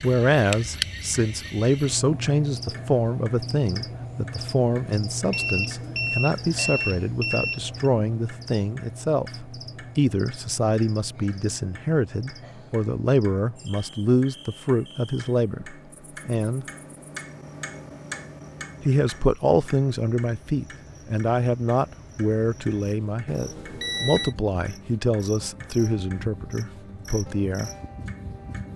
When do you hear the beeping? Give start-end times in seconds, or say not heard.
5.3-7.8, 23.2-24.4.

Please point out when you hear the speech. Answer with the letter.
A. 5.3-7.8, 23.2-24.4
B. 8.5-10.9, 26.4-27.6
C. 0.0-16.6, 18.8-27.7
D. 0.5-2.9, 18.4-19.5
C.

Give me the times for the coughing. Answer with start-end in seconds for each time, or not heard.
not heard.